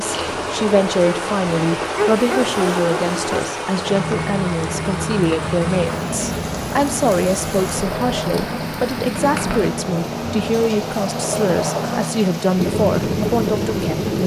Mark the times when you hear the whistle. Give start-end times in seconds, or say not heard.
not heard.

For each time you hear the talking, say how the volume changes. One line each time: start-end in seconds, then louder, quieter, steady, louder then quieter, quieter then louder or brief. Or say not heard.
0.0-14.2 steady.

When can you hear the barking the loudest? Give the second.
2 s.